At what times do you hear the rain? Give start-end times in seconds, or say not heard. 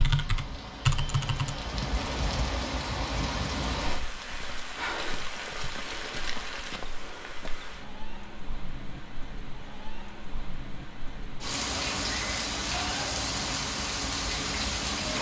0.0-15.1.